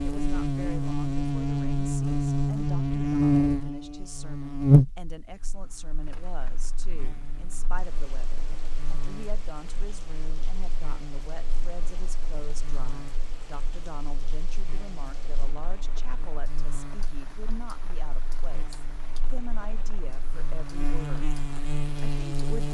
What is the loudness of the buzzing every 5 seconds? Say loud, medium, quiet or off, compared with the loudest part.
loud, quiet, quiet, quiet, medium.